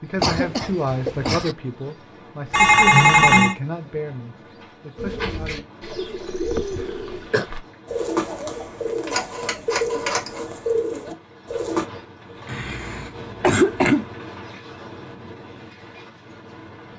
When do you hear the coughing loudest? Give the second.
14 s.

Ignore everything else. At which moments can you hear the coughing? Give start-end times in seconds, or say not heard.
0.1-1.6, 6.0-7.5, 12.4-14.1.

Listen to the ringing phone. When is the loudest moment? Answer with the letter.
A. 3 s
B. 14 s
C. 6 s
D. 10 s
A.